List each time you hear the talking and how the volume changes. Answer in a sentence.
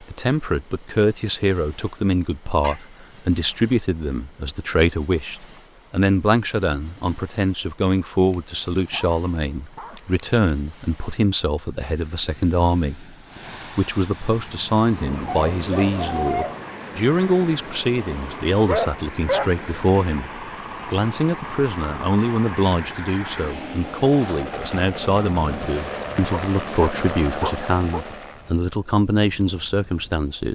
You can hear the talking from 0.0 to 30.5 s, at a steady volume.